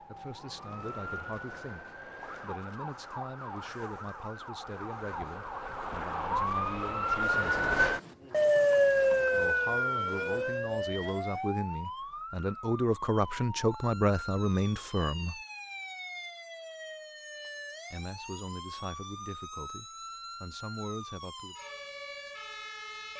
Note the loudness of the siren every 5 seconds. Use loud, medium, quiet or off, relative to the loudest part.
quiet, loud, medium, quiet, quiet.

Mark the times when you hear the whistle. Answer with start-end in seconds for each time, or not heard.
not heard.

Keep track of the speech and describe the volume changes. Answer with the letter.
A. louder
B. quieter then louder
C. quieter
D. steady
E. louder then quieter
E.